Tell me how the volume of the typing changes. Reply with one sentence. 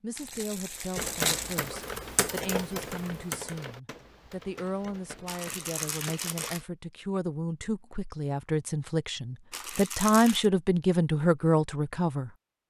The loudness of the typing goes down.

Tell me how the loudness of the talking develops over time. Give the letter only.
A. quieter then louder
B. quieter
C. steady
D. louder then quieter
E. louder
E.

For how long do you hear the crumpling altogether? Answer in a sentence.
The crumpling can be heard for 4 seconds in total.